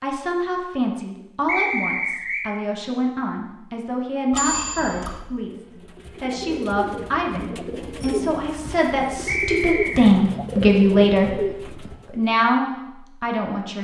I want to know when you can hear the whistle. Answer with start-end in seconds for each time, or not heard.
1.4-2.5, 9.2-10.1.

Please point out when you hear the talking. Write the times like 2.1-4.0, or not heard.
0.0-5.5, 6.2-13.7.